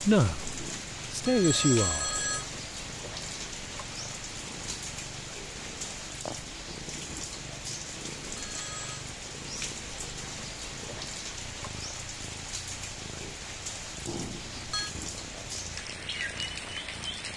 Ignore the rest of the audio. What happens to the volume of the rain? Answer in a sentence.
The loudness of the rain stays about the same.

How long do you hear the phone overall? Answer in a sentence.
You can hear the phone for 4 seconds altogether.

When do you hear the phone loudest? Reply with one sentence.
The loudest moment of the phone is at 2 seconds.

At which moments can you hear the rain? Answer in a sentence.
You can hear the rain from 0.0 to 17.3 s.